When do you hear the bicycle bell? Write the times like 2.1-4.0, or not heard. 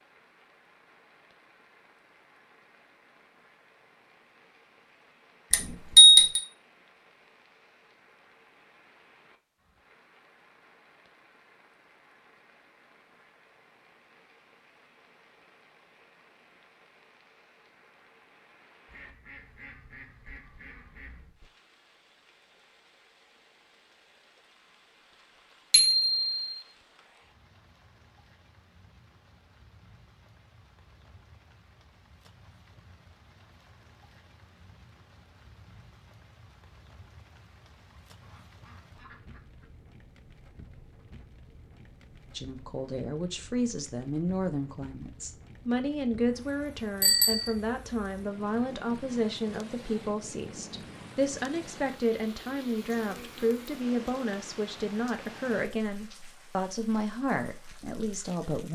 5.5-6.4, 25.7-26.4, 47.0-47.5.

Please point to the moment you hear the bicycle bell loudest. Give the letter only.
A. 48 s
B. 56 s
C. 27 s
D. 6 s
D.